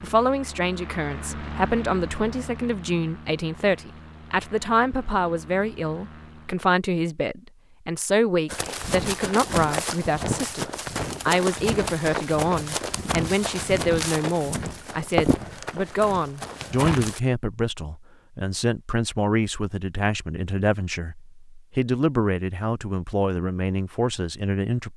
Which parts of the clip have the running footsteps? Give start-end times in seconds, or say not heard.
8.4-17.2.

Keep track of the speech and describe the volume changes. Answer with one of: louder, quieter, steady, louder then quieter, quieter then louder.
steady.